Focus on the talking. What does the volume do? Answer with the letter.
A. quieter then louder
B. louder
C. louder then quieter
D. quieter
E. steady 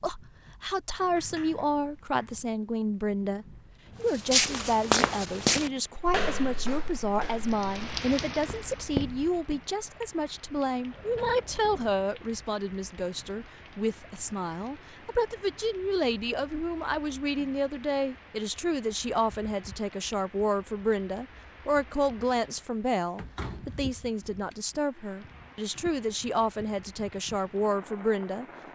E.